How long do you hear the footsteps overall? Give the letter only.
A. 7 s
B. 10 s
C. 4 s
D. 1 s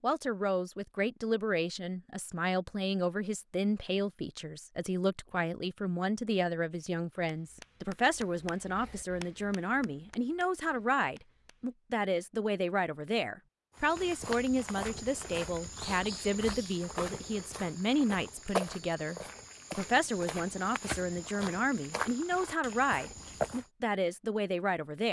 B.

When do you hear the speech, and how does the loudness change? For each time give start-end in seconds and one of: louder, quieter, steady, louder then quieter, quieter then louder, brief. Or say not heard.
0.0-25.0 steady.